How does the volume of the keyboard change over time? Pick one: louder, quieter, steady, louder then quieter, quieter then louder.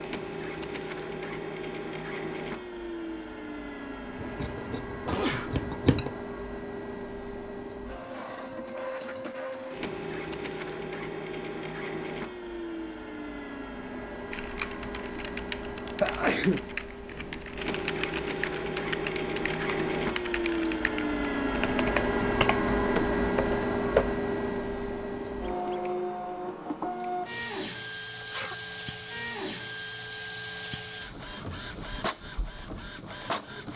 louder.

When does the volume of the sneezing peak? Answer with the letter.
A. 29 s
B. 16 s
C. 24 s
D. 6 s
B.